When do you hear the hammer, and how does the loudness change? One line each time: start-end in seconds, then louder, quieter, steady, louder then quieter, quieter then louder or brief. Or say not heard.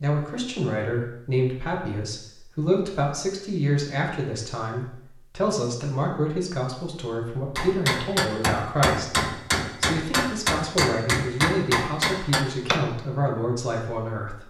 7.5-12.8 steady.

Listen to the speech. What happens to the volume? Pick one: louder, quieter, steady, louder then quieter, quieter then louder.
steady.